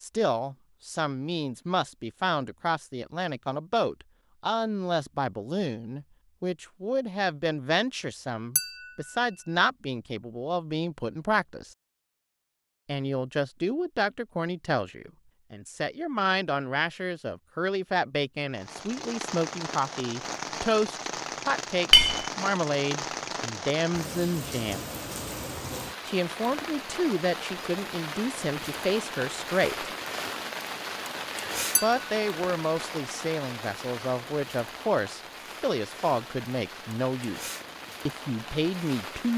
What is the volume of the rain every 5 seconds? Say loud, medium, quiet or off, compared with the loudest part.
off, off, off, loud, loud, loud, loud, medium.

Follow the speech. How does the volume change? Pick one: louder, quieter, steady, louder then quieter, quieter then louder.
steady.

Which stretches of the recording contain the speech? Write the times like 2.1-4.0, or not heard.
0.0-11.7, 12.8-24.8, 26.1-29.9, 31.8-39.3.